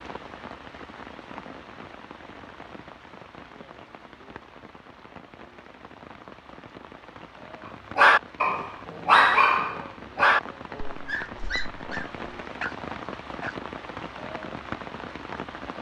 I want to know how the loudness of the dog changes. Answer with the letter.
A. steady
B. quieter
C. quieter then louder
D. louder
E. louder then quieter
B.